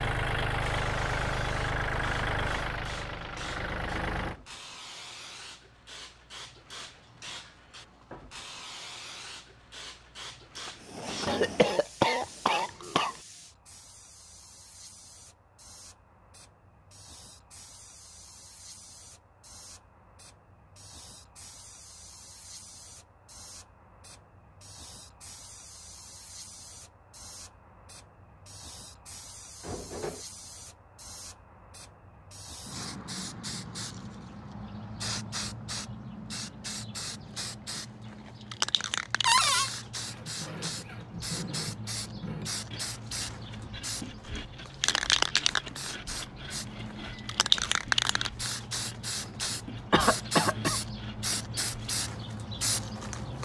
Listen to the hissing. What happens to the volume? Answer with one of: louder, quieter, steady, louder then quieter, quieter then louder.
quieter then louder.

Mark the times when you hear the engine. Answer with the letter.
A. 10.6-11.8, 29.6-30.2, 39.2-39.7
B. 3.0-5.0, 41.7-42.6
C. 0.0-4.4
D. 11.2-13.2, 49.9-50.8
C.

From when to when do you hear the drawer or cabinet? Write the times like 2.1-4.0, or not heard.
10.6-11.8, 29.6-30.2, 39.2-39.7.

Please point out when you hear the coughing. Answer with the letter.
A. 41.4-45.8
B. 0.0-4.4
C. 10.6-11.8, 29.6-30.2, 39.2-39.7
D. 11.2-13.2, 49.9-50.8
D.